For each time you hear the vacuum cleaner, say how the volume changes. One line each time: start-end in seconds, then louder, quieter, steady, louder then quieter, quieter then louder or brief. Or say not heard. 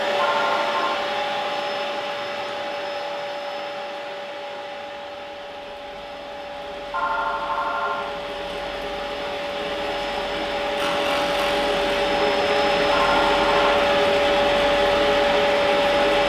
0.0-16.2 quieter then louder.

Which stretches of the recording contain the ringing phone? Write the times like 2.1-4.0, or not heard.
0.1-1.0, 6.9-8.2, 12.9-13.8.